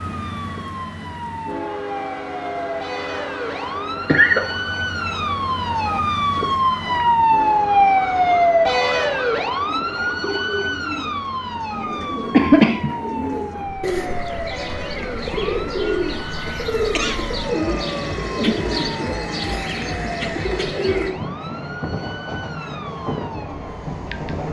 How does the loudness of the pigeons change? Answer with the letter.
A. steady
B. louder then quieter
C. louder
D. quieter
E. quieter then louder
C.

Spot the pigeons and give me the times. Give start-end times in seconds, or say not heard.
9.6-21.1.